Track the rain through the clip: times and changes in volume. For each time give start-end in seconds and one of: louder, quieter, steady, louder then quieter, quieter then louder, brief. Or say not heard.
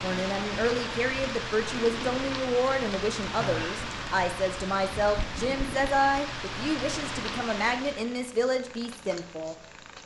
0.0-8.2 steady.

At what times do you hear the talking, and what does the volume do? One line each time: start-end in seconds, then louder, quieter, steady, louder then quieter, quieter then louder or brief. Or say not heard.
0.0-9.6 steady.